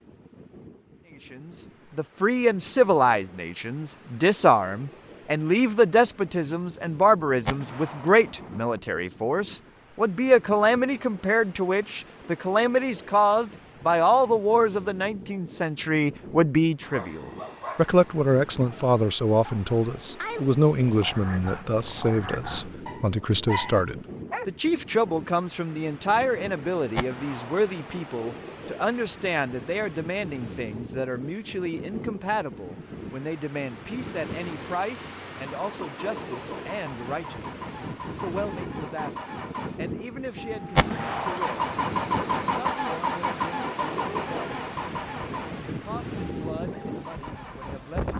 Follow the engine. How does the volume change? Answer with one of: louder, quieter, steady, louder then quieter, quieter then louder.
louder then quieter.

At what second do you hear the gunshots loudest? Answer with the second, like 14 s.
41 s.